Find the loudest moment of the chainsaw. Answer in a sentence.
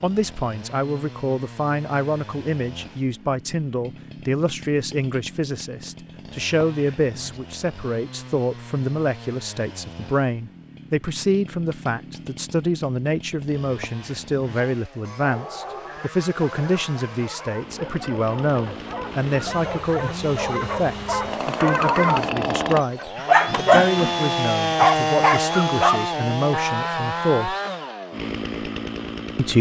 The volume of the chainsaw peaks at 25 seconds.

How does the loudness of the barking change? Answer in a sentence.
The volume of the barking goes up.